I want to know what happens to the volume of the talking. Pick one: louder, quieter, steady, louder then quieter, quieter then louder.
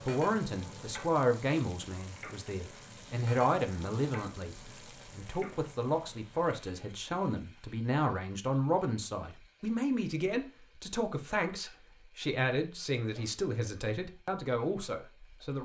steady.